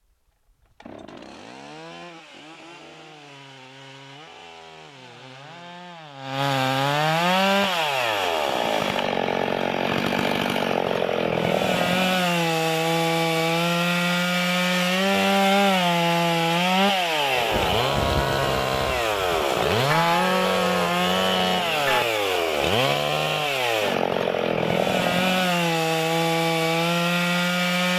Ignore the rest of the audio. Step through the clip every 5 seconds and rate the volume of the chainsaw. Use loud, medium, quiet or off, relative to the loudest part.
quiet, loud, loud, loud, loud, loud.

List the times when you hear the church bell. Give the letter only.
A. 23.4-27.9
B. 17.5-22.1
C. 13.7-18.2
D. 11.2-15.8
B.